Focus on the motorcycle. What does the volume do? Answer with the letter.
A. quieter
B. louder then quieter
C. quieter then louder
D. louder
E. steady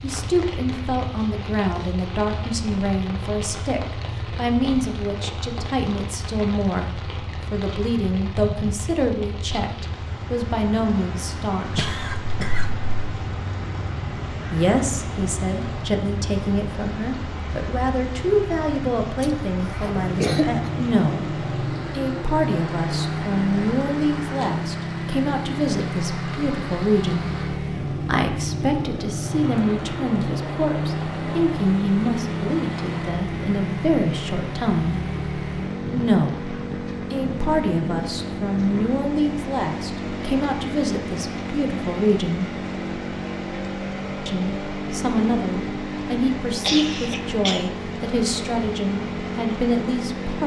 D.